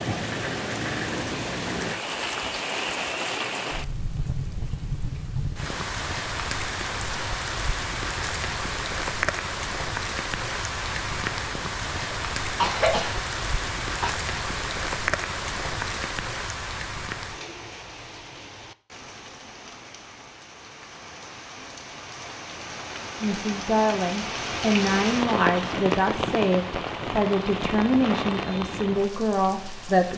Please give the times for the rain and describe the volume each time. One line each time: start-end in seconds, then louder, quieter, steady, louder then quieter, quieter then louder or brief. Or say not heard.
0.0-30.1 quieter then louder.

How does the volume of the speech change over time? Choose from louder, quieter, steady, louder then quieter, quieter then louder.
steady.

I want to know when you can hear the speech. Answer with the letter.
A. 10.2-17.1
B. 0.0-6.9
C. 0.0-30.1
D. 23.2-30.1
D.